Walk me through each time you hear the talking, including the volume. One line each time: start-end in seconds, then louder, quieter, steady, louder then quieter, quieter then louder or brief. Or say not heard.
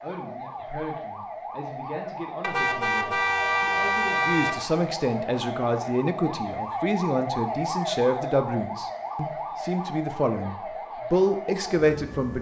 0.0-12.3 louder.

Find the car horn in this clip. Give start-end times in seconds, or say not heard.
2.4-4.7.